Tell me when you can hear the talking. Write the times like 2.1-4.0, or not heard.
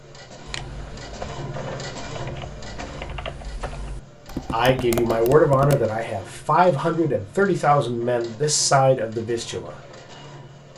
4.5-9.7.